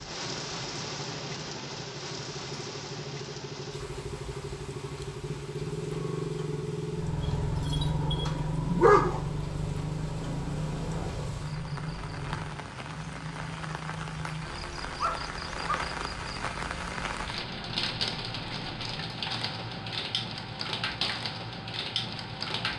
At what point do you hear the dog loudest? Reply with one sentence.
The loudest moment of the dog is at 9 seconds.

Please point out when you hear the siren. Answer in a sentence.
The siren can't be heard in this clip.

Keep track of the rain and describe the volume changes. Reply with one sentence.
The volume of the rain goes down, then up.